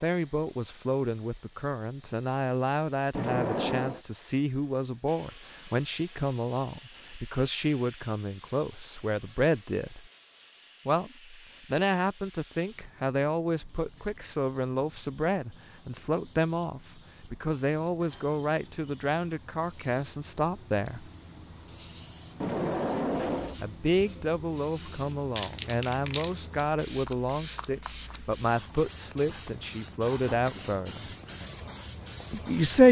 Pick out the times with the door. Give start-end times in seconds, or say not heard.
3.1-4.0, 22.4-23.6.